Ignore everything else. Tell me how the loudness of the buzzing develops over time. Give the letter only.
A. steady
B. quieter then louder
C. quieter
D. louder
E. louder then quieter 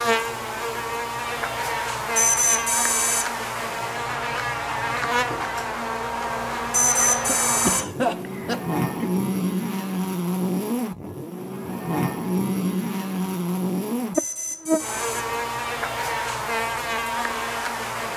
A.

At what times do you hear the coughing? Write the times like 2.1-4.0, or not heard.
7.2-9.1.